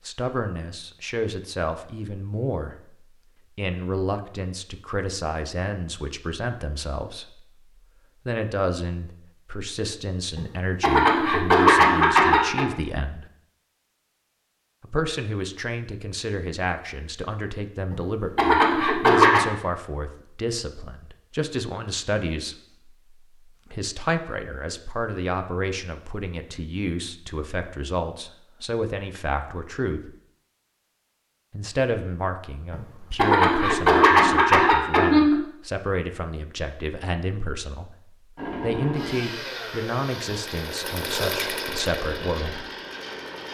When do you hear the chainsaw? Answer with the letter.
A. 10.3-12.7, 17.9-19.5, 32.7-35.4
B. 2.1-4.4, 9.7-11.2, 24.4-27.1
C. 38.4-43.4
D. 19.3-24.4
C.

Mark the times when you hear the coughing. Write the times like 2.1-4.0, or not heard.
10.3-12.7, 17.9-19.5, 32.7-35.4.